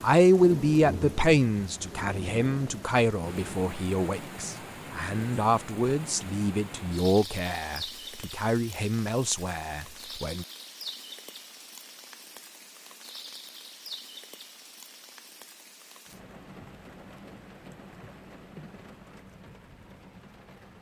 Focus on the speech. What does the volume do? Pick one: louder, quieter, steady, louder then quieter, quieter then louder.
quieter.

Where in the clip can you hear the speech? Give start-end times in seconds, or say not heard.
0.0-10.4.